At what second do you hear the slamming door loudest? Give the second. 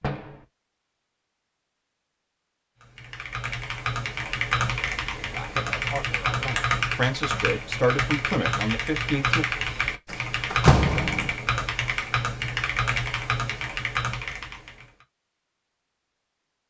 11 s.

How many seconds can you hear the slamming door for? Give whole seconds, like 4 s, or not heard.
2 s.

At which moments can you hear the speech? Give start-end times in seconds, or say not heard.
5.2-9.4.